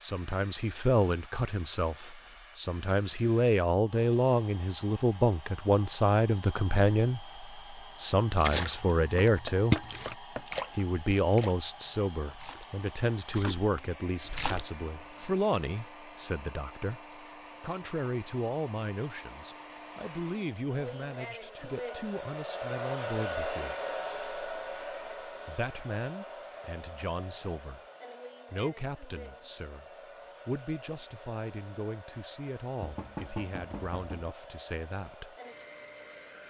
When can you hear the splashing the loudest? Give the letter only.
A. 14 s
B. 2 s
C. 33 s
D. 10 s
D.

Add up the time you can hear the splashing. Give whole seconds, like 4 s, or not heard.
7 s.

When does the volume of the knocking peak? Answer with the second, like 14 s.
33 s.